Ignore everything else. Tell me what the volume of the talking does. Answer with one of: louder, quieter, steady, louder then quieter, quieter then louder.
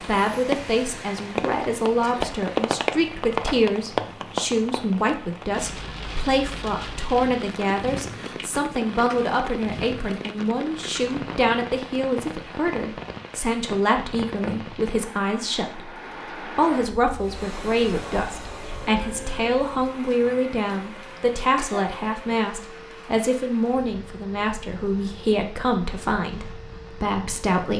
steady.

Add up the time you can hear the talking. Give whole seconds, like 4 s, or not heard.
28 s.